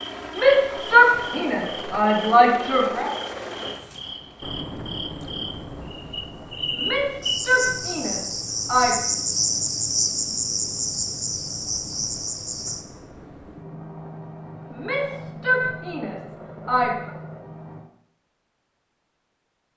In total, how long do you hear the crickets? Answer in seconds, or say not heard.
13 s.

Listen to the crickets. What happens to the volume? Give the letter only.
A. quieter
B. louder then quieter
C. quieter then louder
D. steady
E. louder
E.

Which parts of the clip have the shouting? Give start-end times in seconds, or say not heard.
0.3-3.1, 6.7-8.9, 14.7-17.1.